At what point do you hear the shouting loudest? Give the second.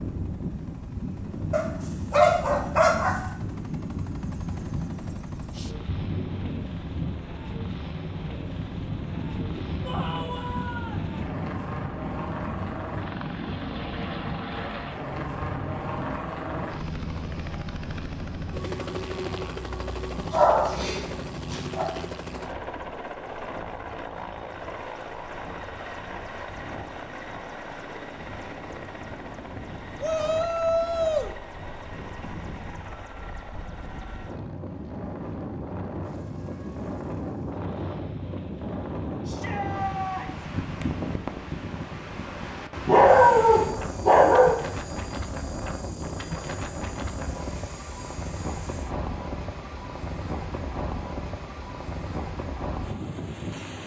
31 s.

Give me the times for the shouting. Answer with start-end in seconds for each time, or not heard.
9.8-11.0, 30.0-31.4, 39.2-40.5.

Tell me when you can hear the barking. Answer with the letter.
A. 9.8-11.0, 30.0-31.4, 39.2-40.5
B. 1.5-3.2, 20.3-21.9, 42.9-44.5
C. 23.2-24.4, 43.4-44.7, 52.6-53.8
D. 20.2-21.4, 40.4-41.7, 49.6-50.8
B.